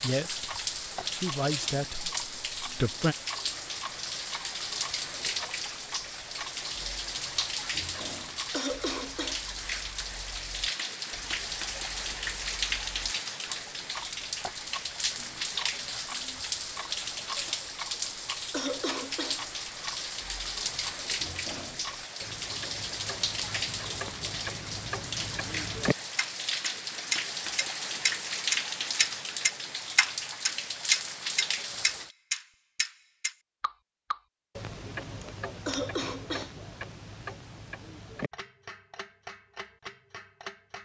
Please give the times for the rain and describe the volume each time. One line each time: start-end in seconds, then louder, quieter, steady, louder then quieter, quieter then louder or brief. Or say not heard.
0.0-32.1 steady.